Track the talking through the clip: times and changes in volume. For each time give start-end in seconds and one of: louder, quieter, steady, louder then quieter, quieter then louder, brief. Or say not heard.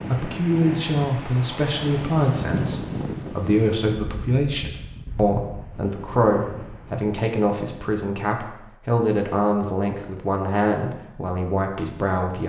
0.1-12.4 steady.